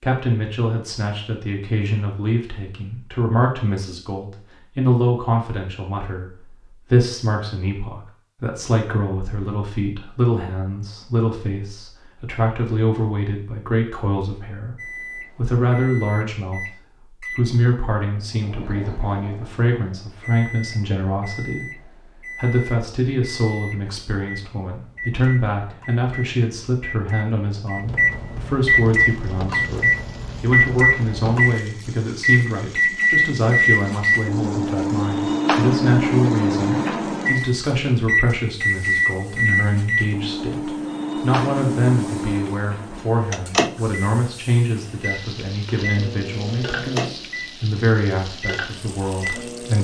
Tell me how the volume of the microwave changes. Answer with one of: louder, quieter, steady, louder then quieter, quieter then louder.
louder then quieter.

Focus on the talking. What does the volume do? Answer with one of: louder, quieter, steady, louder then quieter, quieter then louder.
steady.